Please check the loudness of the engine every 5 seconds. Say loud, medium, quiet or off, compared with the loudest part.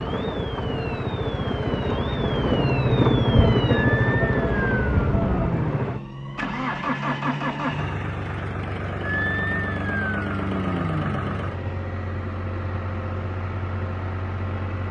loud, medium, medium.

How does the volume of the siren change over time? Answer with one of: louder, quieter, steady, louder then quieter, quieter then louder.
louder.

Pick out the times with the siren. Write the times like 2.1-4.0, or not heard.
0.0-11.5.